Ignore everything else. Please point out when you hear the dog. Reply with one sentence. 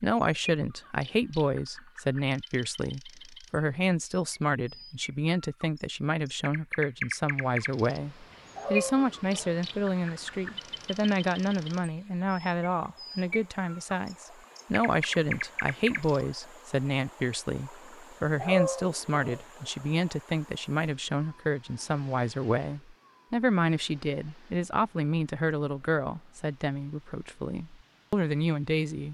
The dog can be heard from 8.6 to 9.6 s and from 18.4 to 19.4 s.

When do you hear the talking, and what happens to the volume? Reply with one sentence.
The talking can be heard from 0.0 to 29.0 s, at a steady volume.